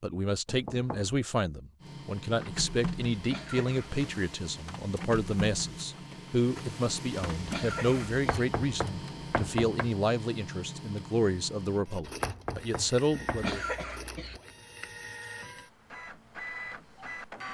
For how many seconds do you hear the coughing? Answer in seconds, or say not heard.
3 s.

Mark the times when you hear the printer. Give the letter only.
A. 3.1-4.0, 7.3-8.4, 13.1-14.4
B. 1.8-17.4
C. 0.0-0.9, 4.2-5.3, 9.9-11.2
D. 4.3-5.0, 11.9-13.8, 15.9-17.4
B.